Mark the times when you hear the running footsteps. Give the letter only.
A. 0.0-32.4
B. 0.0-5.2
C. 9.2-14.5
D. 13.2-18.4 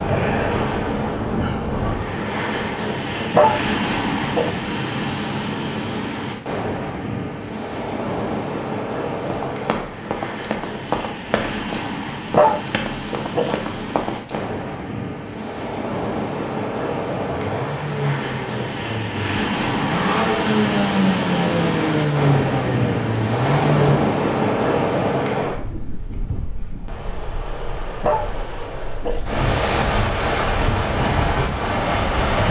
C.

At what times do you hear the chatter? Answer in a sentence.
You can't hear the chatter here.